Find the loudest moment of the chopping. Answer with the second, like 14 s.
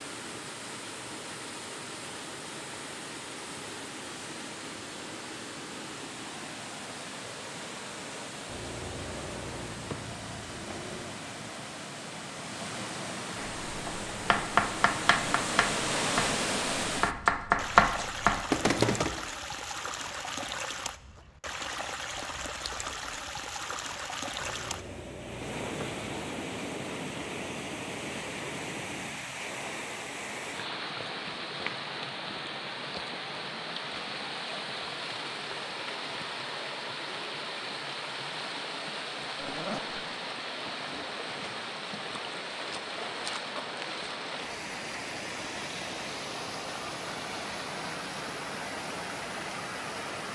18 s.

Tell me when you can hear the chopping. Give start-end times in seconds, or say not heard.
13.3-19.2.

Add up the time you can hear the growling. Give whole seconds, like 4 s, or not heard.
5 s.